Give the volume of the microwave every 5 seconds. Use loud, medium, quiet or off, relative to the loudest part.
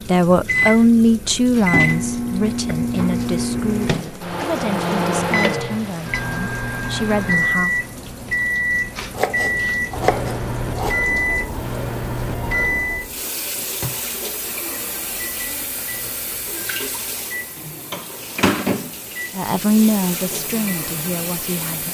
loud, loud, loud, quiet, quiet.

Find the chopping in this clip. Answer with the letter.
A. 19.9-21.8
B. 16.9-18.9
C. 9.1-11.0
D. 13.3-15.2
C.